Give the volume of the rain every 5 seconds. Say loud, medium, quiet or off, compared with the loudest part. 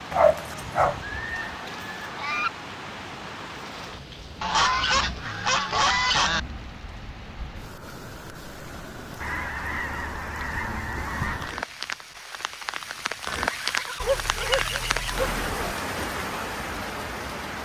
medium, medium, loud, loud.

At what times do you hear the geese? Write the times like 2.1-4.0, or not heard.
0.8-2.5, 4.4-6.4, 9.2-11.6, 13.4-15.2.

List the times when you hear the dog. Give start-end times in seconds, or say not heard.
0.1-1.0, 14.0-15.8.